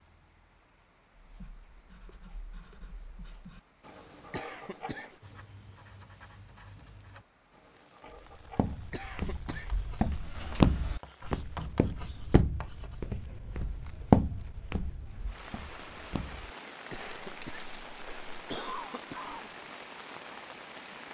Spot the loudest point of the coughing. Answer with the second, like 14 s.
19 s.